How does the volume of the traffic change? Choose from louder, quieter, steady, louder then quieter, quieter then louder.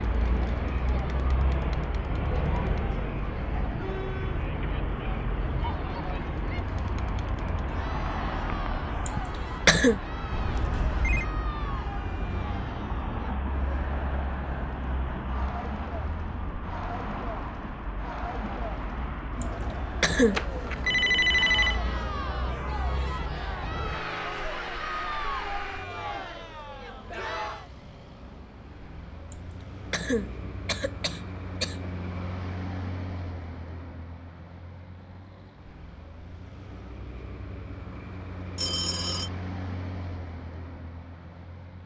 quieter.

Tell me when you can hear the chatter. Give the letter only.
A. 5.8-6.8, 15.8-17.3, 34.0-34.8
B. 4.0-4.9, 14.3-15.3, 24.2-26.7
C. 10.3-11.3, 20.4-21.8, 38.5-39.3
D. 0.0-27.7
D.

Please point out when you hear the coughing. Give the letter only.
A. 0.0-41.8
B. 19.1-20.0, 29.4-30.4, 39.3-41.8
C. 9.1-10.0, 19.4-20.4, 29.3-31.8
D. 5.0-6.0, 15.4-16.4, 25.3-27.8
C.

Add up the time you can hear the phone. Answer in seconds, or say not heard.
3 s.